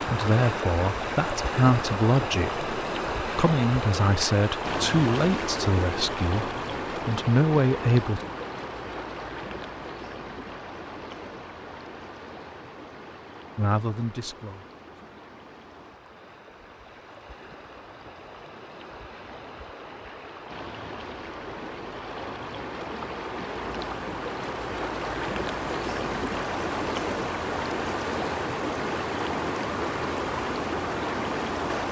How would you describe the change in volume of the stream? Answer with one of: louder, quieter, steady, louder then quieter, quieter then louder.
quieter then louder.